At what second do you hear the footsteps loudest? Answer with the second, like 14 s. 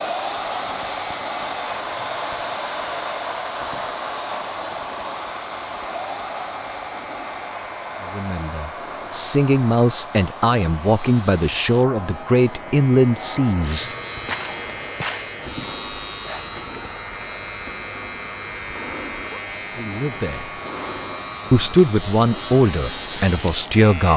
15 s.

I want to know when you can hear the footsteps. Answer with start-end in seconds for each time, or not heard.
13.7-15.3.